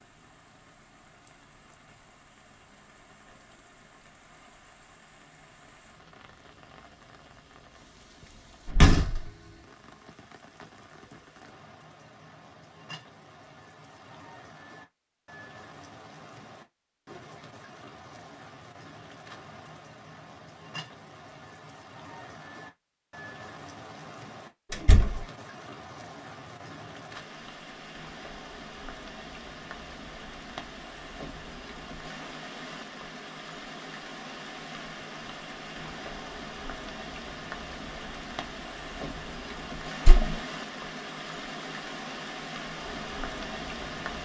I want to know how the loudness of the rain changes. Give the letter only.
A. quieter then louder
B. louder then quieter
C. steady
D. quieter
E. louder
E.